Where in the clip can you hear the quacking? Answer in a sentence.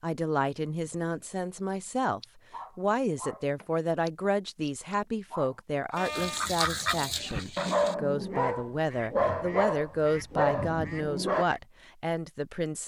The quacking can be heard from 6.0 to 11.7 s.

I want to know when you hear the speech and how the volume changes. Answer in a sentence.
You can hear the speech from 0.0 to 12.8 s, at a steady volume.